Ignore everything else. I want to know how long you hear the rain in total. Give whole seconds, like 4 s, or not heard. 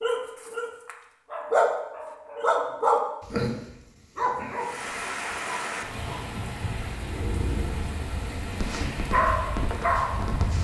6 s.